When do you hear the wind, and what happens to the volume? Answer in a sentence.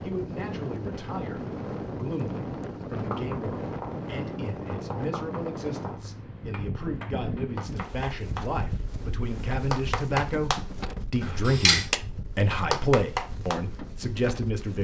The wind can be heard from 0.0 to 14.8 s, getting quieter.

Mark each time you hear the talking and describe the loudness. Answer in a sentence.
You can hear the talking from 0.0 to 14.8 s, getting louder.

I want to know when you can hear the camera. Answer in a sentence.
The camera can be heard from 11.2 to 11.8 s.